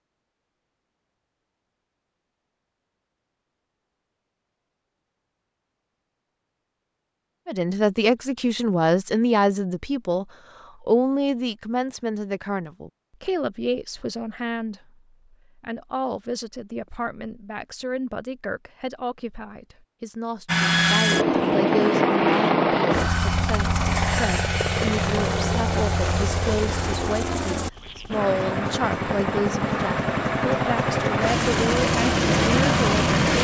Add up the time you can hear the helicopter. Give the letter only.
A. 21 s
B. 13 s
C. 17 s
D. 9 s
B.